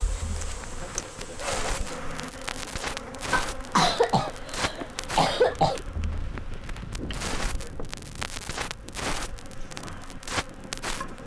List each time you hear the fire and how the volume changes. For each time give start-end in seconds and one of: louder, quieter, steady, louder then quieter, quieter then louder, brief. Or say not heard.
0.0-11.2 steady.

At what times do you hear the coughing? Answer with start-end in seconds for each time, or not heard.
3.3-5.8.